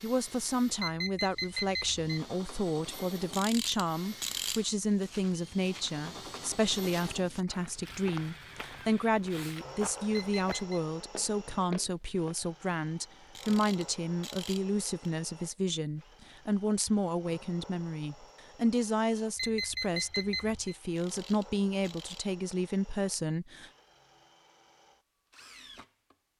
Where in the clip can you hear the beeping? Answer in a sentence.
You can hear the beeping from 0.8 to 2.1 s, from 10.2 to 10.8 s and from 19.4 to 20.8 s.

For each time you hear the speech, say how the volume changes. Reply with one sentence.
The speech can be heard from 0.0 to 23.7 s, at a steady volume.